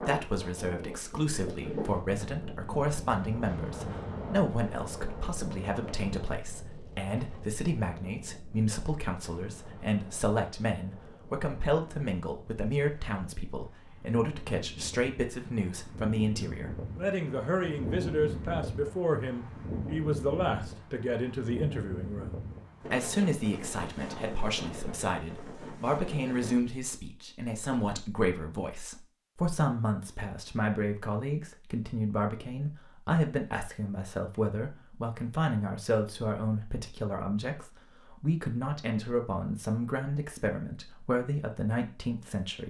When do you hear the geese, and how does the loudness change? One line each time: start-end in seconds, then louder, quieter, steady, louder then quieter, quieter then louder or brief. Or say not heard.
not heard.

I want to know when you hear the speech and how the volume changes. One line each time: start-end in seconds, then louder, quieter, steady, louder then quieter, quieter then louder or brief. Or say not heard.
0.0-42.6 steady.